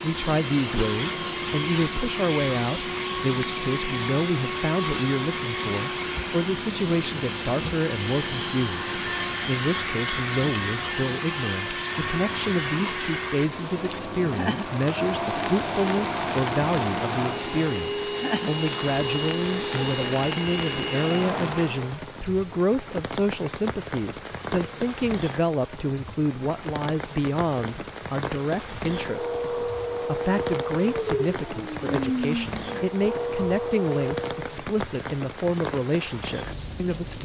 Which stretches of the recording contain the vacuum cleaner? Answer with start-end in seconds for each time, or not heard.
0.0-22.0, 28.8-34.4.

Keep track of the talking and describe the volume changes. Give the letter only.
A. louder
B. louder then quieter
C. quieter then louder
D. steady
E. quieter
D.